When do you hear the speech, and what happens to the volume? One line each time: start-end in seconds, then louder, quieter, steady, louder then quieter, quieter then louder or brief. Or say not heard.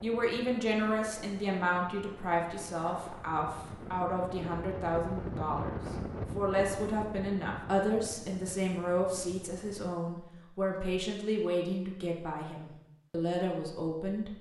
0.0-14.3 steady.